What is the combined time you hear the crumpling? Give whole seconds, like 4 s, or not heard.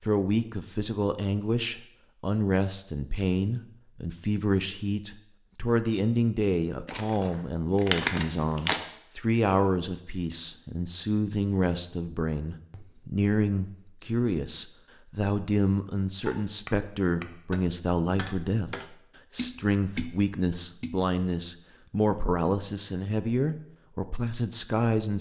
2 s.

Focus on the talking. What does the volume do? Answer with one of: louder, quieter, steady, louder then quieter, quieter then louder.
steady.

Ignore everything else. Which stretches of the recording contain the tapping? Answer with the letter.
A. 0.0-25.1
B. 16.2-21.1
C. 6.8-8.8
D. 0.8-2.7
B.